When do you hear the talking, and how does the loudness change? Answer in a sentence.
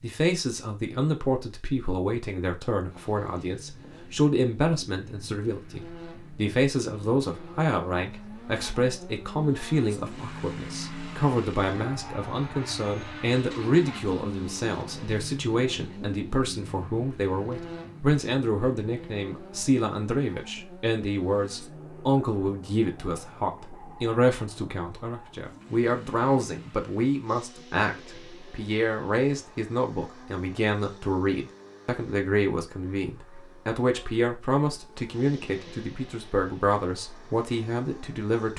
You can hear the talking from 0.0 to 38.5 s, at a steady volume.